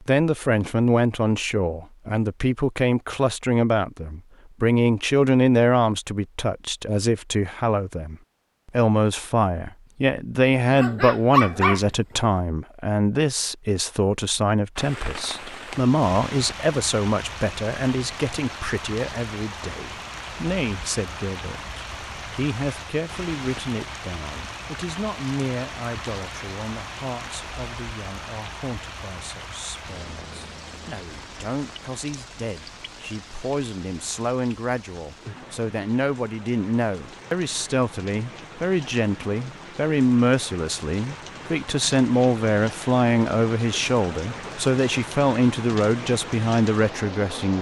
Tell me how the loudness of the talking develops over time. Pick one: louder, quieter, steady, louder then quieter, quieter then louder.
quieter then louder.